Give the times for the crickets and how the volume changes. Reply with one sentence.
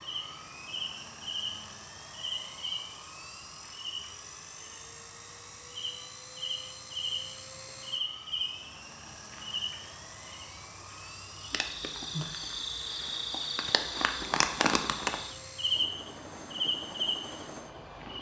The crickets can be heard from 0.0 to 18.1 s, getting louder.